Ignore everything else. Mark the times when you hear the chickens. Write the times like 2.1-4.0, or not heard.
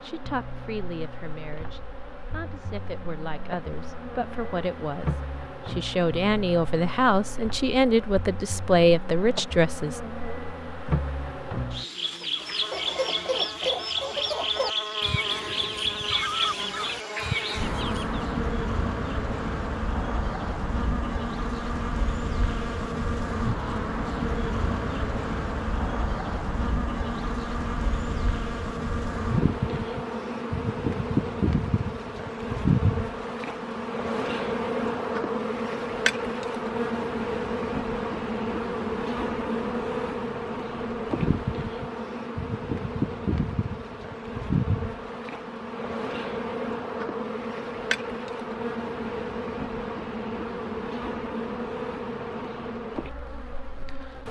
12.2-18.2.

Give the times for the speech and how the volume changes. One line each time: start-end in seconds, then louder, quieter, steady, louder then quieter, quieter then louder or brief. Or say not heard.
0.0-10.0 louder.